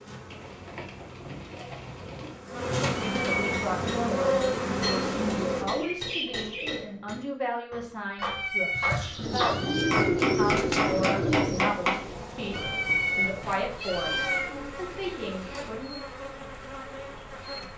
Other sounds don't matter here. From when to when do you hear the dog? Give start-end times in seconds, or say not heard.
not heard.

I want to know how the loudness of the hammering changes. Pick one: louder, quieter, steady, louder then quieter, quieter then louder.
louder.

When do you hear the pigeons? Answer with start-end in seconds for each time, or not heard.
0.2-2.4, 5.0-6.8, 9.2-11.7, 13.7-15.7.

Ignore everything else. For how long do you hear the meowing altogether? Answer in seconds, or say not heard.
5 s.